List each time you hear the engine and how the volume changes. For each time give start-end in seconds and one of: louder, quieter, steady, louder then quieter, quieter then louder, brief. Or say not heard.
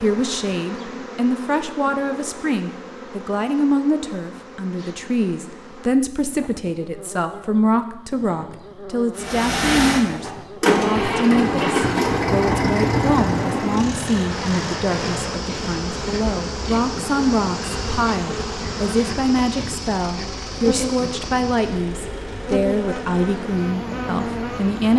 9.2-24.9 quieter.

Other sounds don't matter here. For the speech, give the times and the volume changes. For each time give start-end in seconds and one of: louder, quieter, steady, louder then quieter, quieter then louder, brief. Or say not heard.
0.0-24.9 steady.